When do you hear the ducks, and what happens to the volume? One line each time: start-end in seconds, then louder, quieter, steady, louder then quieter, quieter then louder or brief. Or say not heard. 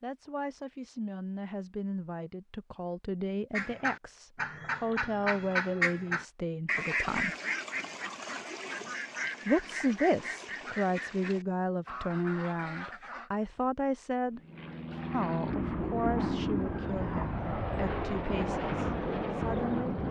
3.5-13.3 quieter.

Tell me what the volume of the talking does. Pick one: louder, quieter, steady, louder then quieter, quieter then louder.
louder then quieter.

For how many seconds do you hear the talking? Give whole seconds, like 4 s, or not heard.
17 s.